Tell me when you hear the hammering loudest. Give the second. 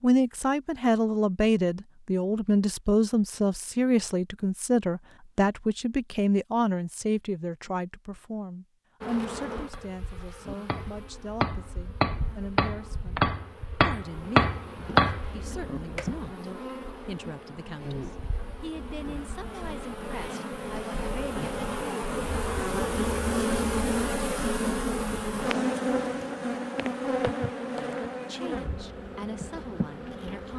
15 s.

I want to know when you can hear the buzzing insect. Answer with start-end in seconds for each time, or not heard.
9.0-30.5.